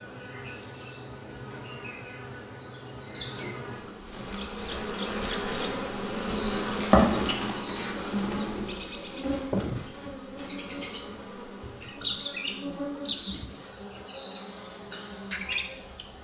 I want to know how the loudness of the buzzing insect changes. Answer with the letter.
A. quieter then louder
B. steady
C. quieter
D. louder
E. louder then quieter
E.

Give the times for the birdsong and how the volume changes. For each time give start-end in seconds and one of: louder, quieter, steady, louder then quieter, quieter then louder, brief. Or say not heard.
0.2-16.1 louder.